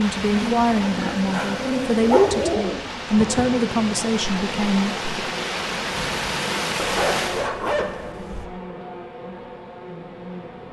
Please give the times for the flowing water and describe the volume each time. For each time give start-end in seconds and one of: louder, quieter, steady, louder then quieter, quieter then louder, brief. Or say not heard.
0.0-7.5 louder.